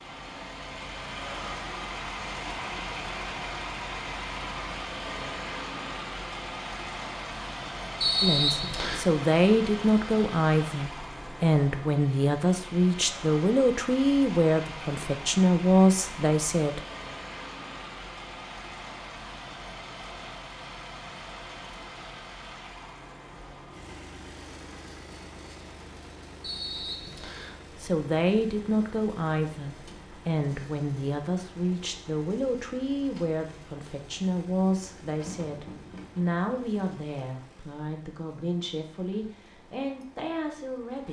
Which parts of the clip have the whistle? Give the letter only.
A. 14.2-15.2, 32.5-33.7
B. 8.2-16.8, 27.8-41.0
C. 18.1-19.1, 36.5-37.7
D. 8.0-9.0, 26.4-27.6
D.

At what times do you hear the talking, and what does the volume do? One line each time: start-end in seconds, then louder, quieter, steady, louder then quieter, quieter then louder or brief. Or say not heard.
8.2-16.8 steady
27.8-41.0 quieter.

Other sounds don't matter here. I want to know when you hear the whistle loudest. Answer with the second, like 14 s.
8 s.